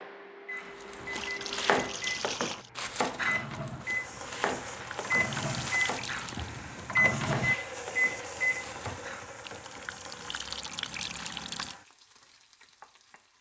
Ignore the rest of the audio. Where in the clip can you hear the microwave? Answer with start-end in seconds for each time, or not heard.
0.0-8.7.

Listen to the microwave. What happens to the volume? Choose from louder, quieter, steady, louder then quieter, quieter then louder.
louder.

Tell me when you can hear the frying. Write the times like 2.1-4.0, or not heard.
3.8-13.3.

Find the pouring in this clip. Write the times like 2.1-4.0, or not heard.
1.1-2.7, 4.7-6.6, 9.4-11.8.